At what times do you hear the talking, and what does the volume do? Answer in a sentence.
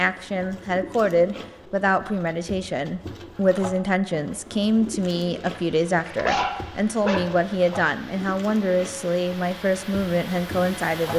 The talking can be heard from 0.0 to 11.1 s, at a steady volume.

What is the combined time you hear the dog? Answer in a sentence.
You can hear the dog for 2 seconds altogether.